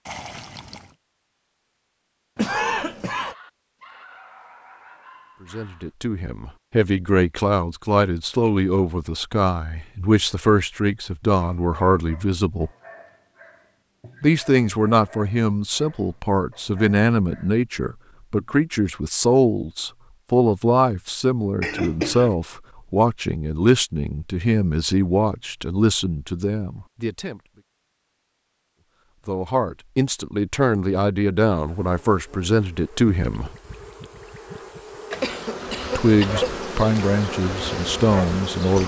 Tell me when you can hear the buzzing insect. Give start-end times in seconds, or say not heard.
31.5-38.8.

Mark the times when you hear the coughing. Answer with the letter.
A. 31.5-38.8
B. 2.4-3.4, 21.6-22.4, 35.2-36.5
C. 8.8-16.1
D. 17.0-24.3
B.